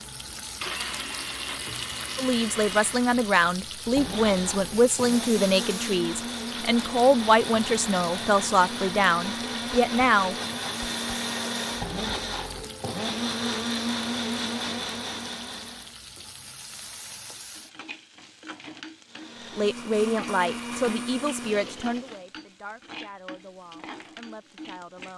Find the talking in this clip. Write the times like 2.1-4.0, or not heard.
2.1-10.3, 19.5-25.1.